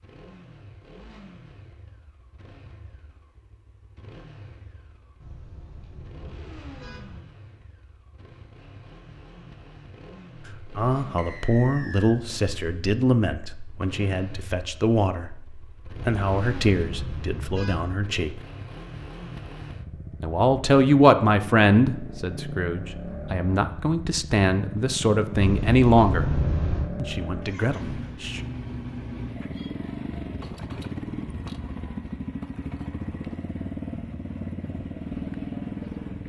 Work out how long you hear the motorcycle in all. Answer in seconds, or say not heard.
36 s.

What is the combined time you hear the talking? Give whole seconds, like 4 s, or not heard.
15 s.